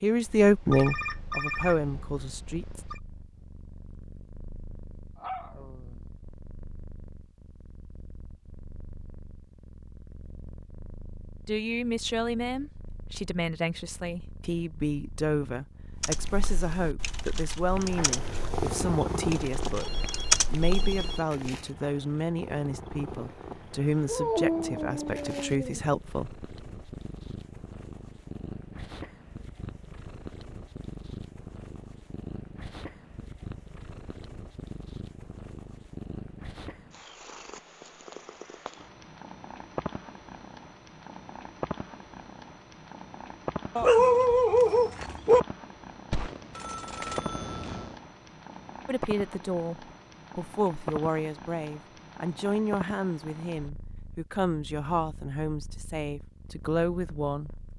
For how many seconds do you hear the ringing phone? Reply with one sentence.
The ringing phone can be heard for 6 seconds in total.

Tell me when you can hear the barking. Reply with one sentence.
You can hear the barking from 5.2 to 6.0 s, from 24.1 to 25.8 s and from 43.8 to 45.4 s.